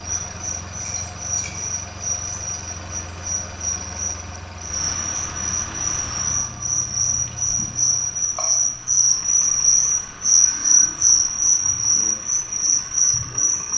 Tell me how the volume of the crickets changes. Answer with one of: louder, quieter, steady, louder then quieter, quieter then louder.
louder.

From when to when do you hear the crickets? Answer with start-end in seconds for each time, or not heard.
0.0-13.7.